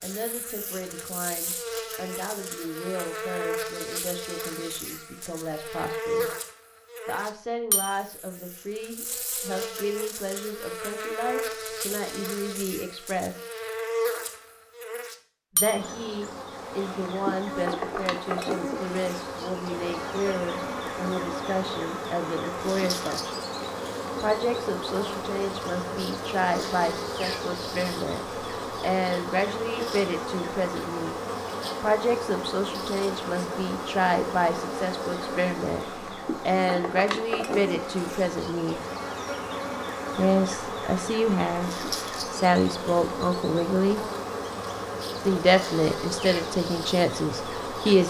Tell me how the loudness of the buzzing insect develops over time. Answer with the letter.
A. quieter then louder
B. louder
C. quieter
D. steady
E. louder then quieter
D.